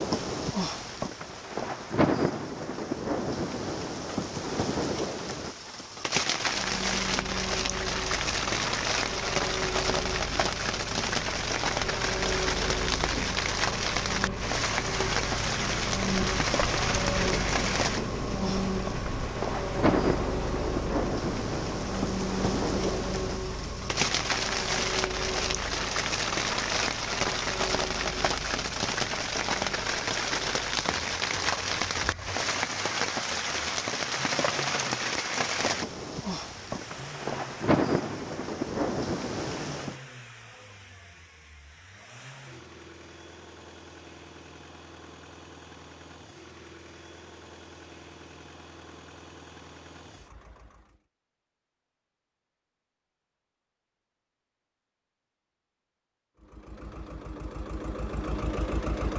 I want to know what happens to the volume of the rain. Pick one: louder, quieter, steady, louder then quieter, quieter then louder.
steady.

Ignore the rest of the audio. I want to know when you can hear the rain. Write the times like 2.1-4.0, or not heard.
0.0-40.0.